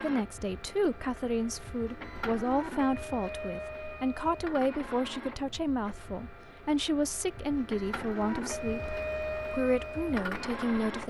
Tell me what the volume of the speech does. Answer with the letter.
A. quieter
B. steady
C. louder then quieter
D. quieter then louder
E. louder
B.